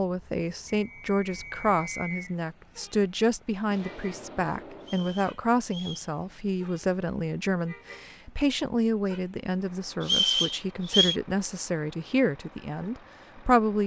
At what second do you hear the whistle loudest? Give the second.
10 s.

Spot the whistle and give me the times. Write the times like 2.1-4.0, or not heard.
0.8-2.4, 4.8-6.1, 10.0-11.2.